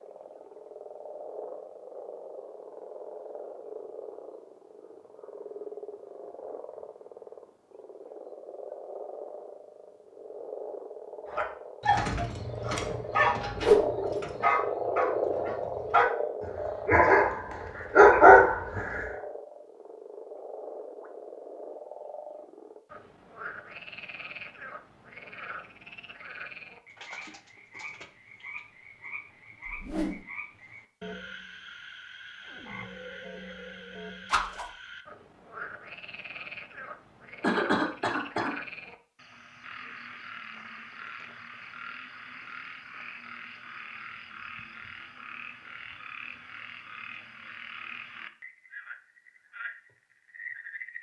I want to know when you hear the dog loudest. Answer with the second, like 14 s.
18 s.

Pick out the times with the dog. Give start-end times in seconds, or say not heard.
11.3-19.1.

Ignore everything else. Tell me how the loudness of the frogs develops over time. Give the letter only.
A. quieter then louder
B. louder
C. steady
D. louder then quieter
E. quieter
D.